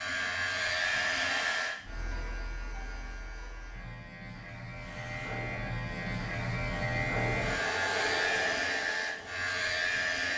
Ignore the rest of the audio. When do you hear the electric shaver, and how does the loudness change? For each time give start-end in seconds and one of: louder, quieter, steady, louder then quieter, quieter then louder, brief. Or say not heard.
0.0-10.3 quieter then louder.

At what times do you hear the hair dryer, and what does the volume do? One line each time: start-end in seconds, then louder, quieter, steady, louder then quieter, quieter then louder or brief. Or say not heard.
0.0-1.8 brief
4.7-10.3 louder then quieter.